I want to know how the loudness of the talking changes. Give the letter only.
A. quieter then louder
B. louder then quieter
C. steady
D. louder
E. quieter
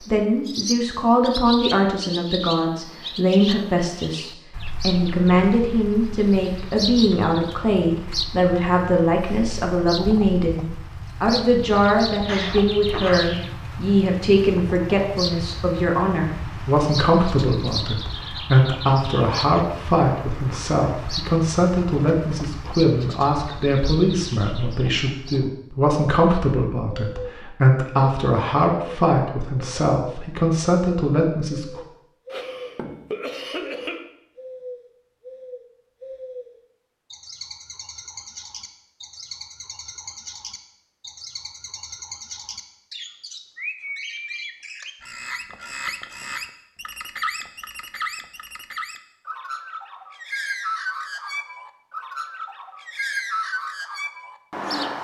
C.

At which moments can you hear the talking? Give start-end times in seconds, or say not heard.
0.1-31.8.